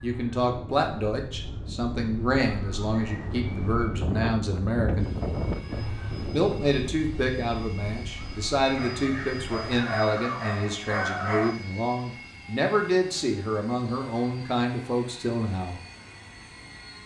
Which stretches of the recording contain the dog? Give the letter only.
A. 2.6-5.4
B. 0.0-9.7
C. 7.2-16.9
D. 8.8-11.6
D.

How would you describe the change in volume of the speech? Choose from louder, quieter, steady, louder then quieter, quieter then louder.
steady.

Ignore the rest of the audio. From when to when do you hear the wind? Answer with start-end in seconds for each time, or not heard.
0.0-9.7.